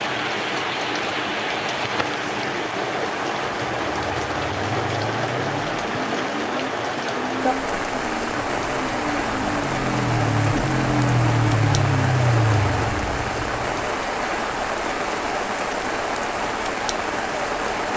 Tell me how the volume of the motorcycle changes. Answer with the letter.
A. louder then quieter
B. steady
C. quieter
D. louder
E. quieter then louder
D.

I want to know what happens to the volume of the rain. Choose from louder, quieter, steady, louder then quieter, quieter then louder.
steady.